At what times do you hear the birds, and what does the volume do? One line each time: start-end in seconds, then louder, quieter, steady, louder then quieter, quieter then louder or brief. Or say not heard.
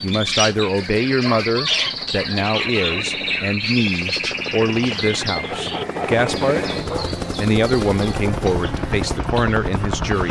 0.0-10.2 quieter.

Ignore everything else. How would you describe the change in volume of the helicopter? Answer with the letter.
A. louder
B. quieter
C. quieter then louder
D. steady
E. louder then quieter
A.